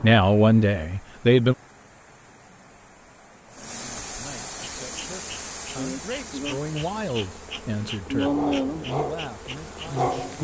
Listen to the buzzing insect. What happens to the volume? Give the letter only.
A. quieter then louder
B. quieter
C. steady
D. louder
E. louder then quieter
E.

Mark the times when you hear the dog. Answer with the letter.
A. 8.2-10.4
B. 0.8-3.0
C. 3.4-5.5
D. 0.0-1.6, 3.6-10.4
A.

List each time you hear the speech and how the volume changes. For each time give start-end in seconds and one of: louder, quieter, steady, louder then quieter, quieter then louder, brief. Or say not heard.
0.0-1.6 brief
3.6-10.4 louder then quieter.